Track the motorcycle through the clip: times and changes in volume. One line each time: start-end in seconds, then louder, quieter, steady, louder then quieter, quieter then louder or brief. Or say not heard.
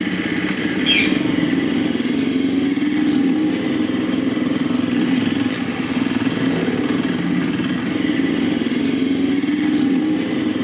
0.0-10.5 steady.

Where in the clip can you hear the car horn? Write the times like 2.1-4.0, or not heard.
0.8-1.6.